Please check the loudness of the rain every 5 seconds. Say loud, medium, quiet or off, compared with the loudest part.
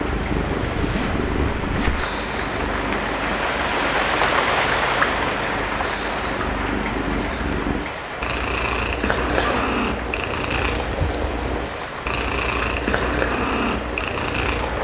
loud, loud, medium.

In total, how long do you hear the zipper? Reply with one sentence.
The zipper can be heard for 2 seconds in total.